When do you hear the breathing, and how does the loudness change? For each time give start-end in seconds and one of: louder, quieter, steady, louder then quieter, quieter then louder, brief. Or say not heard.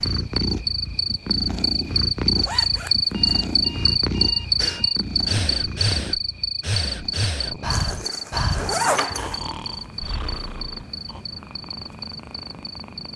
4.5-11.2 quieter.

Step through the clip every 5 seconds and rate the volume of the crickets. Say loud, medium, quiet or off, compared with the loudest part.
loud, medium, quiet.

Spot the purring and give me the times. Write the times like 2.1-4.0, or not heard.
0.0-13.1.